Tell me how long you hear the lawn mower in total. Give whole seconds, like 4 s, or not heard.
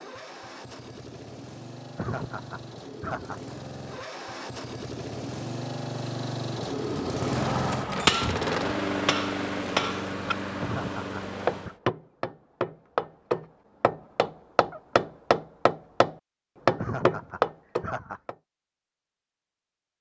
12 s.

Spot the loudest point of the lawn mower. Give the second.
9 s.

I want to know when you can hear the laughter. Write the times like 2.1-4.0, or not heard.
1.9-3.5, 10.6-11.8, 16.8-18.2.